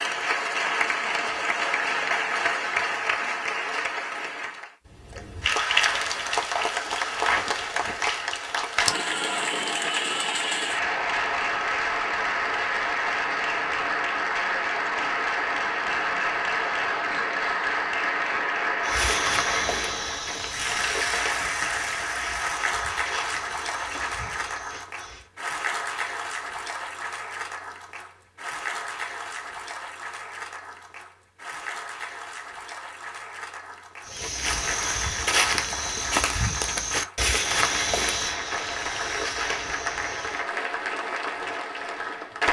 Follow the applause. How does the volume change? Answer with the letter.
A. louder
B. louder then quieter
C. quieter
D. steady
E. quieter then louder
C.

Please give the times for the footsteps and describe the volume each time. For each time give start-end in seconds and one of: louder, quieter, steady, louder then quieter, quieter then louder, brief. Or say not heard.
18.8-25.2 quieter
34.0-40.5 quieter.